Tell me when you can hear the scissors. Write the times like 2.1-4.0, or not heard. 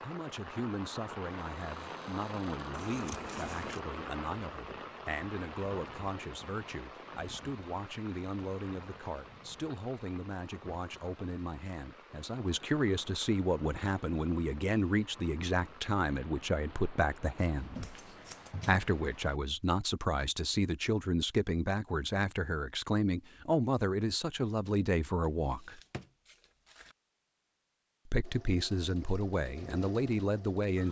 2.7-3.9, 17.8-18.6, 25.4-26.9.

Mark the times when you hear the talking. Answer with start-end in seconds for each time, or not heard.
0.0-17.8, 18.6-25.8, 28.1-30.8.